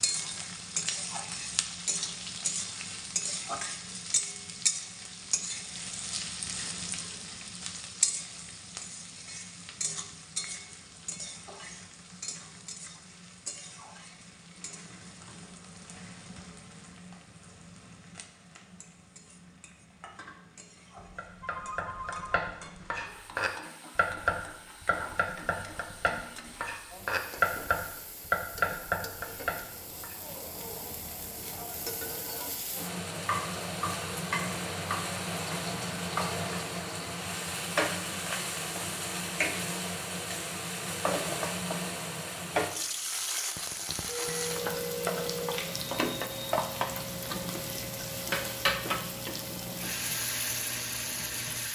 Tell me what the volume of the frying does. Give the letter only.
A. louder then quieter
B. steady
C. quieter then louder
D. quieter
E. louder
C.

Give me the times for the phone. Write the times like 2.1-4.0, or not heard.
20.9-22.5, 44.0-45.6.